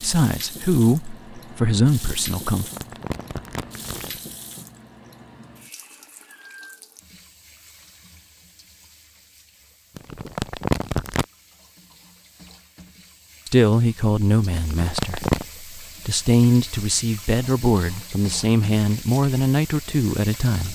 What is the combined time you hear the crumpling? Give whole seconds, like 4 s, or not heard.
4 s.